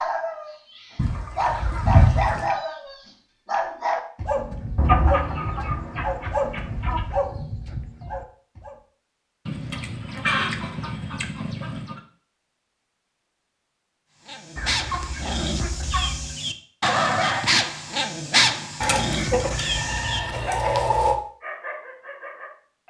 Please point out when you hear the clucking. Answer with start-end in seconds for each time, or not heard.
0.9-2.5, 4.8-7.0, 9.4-12.0, 14.6-16.4, 18.8-21.1.